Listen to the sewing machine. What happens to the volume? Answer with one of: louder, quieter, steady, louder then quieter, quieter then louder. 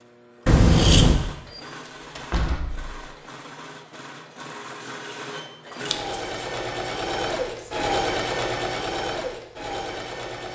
louder.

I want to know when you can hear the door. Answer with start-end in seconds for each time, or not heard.
1.7-3.0.